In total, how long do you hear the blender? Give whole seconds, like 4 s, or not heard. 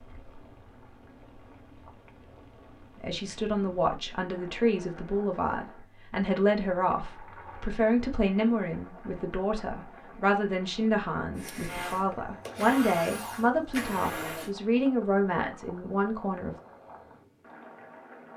3 s.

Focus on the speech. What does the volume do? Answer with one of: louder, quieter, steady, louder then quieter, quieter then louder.
steady.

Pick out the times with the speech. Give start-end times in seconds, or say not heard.
3.0-16.6.